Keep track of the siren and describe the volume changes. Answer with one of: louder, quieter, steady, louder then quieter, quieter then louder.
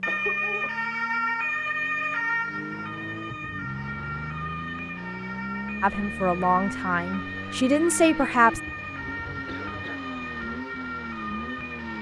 quieter.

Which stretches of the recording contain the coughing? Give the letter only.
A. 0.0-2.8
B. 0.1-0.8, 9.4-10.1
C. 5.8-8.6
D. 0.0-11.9
B.